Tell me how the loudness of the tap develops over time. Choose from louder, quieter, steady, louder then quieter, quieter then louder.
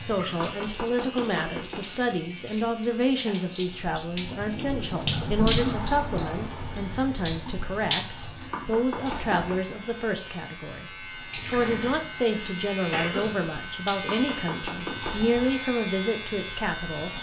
louder then quieter.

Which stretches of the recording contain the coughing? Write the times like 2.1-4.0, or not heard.
11.4-13.4.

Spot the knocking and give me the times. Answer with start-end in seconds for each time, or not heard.
0.4-1.9, 8.5-9.4, 14.1-15.3.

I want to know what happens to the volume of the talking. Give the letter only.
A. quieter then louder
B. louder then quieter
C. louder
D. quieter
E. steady
E.